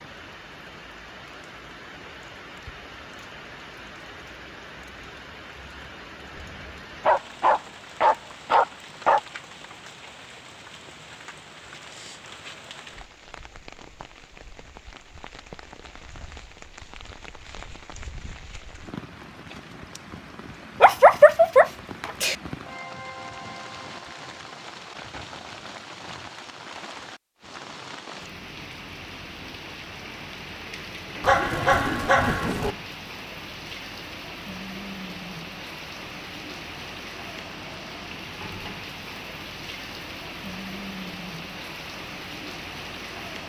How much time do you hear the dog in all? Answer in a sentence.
You can hear the dog for 6 seconds altogether.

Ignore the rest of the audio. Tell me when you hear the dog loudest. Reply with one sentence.
The loudest moment of the dog is at 21 seconds.